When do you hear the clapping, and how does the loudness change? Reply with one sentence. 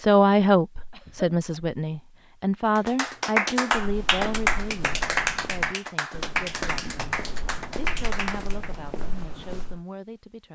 The clapping can be heard from 2.8 to 8.8 s, getting quieter.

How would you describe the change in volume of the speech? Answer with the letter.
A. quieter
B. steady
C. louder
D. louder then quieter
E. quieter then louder
A.